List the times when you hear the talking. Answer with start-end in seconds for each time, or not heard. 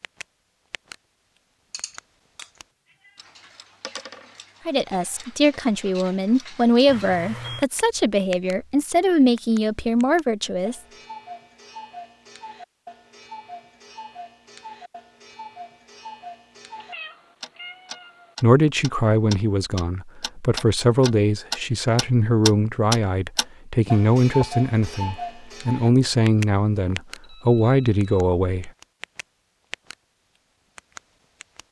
4.7-10.8, 18.4-28.7.